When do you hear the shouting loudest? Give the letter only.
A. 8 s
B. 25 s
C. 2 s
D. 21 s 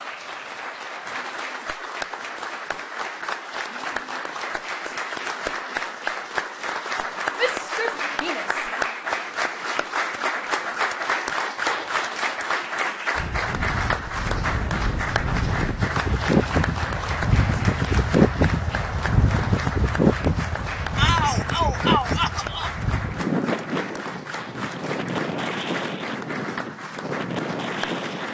D.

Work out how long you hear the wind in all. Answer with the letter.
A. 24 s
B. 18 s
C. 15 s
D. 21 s
C.